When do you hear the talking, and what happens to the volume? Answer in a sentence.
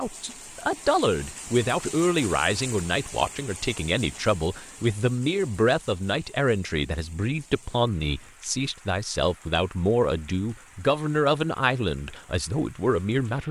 The talking can be heard from 0.0 to 13.4 s, at a steady volume.